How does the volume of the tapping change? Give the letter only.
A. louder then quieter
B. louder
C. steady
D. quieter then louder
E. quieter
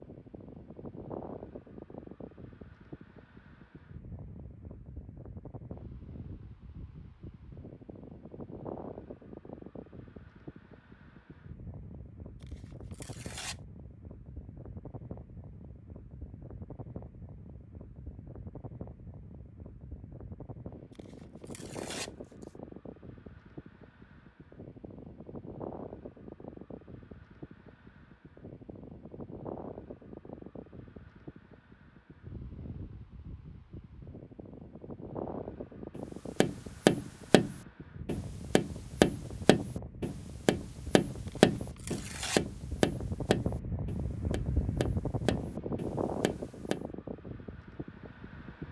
E.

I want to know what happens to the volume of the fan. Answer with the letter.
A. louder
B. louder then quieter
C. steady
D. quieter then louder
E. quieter
A.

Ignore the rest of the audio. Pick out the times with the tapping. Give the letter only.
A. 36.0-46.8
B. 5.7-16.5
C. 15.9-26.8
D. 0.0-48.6
A.